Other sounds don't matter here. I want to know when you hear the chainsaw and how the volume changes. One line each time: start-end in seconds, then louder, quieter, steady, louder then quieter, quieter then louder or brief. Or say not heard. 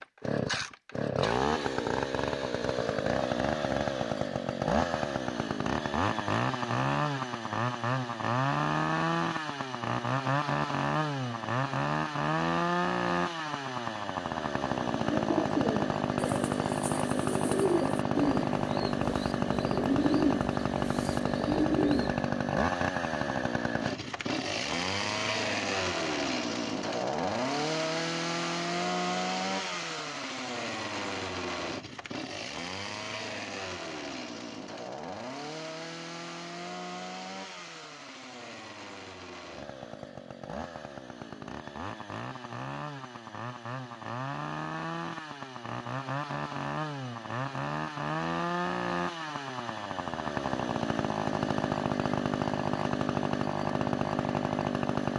0.0-55.1 quieter then louder.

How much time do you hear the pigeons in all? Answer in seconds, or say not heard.
7 s.